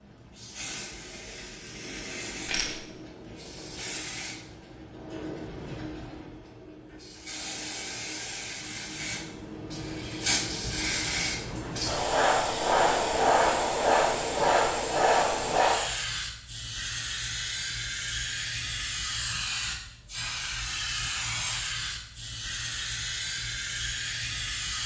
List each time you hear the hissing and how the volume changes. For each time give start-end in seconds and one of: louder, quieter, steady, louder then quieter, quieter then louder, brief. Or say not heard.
0.0-24.8 louder then quieter.